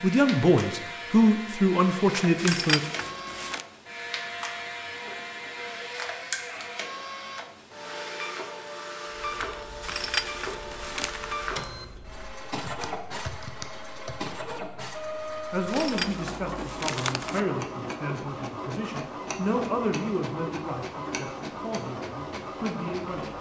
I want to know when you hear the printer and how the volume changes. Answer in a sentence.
You can hear the printer from 0.0 to 23.3 s, at a steady volume.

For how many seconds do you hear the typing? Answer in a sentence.
The typing can be heard for 5 seconds in total.